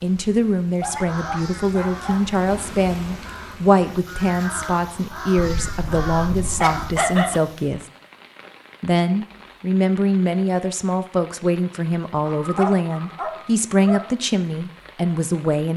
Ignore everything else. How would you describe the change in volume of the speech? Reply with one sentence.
The volume of the speech stays about the same.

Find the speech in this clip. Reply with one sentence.
The speech can be heard from 0.0 to 7.8 s and from 8.8 to 15.7 s.